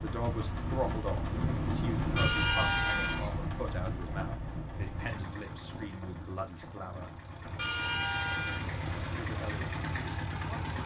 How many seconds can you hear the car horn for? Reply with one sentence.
The car horn can be heard for 2 seconds in total.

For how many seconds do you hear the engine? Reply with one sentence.
The engine can be heard for 11 seconds in total.